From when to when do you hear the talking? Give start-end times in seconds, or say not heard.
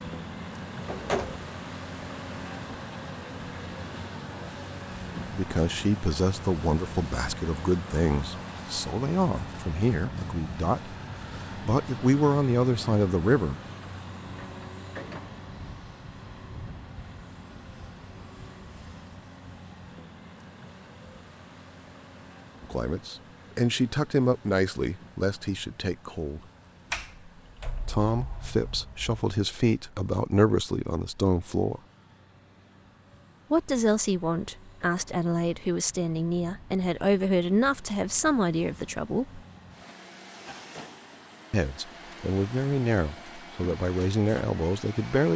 5.3-10.9, 11.6-13.6, 22.6-26.4, 27.9-31.8, 33.5-39.4, 41.5-45.3.